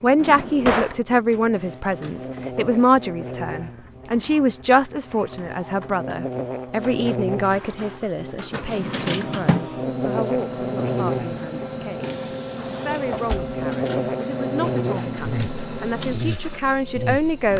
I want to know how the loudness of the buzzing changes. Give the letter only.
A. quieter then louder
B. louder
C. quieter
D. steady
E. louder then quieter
B.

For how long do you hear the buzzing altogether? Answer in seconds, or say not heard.
17 s.